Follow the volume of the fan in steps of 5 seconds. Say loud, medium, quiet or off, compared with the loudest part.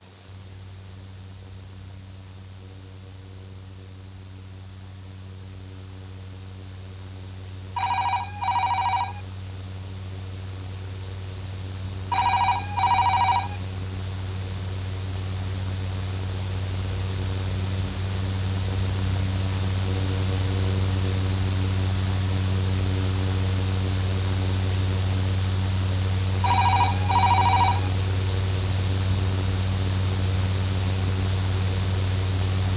quiet, quiet, medium, loud, loud, loud, loud.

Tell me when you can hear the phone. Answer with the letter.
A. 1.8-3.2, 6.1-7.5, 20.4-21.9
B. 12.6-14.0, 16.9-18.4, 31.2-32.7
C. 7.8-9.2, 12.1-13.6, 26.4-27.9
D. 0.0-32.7
C.